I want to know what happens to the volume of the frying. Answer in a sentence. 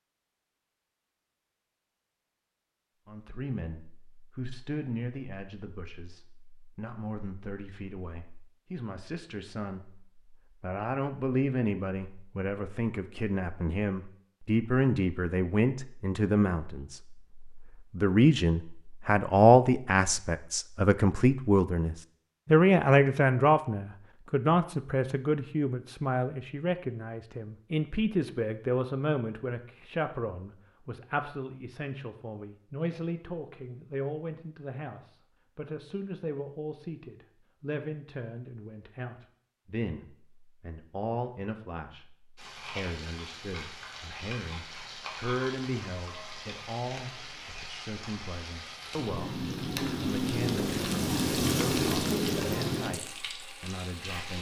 The loudness of the frying goes up.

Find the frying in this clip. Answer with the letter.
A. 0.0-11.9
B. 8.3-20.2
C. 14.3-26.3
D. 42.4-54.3
D.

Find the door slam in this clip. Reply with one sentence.
The door slam can't be heard in this clip.